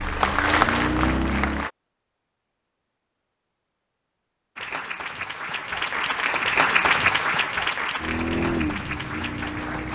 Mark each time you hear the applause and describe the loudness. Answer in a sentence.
The applause can be heard briefly from 0.0 to 1.7 s; and from 4.5 to 9.9 s, getting louder then quieter.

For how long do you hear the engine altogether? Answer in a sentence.
The engine can be heard for 4 seconds in total.